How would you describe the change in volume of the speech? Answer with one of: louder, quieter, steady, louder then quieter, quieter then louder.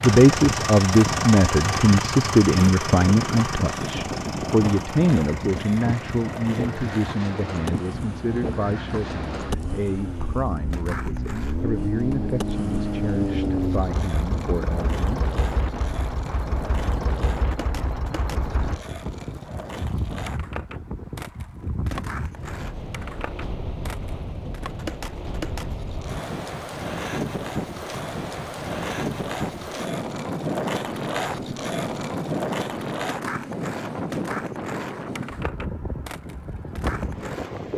quieter.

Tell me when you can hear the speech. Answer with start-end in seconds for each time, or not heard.
0.0-15.2.